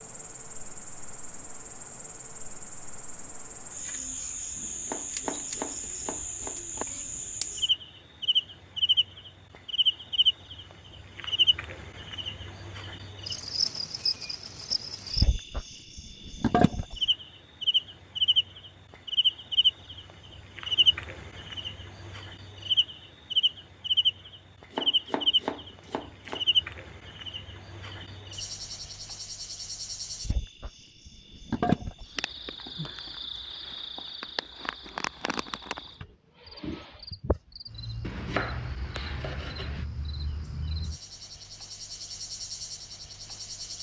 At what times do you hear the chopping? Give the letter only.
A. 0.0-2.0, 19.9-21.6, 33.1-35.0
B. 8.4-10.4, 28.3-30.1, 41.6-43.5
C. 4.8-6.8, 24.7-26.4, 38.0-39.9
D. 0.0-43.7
C.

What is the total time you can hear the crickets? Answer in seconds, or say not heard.
44 s.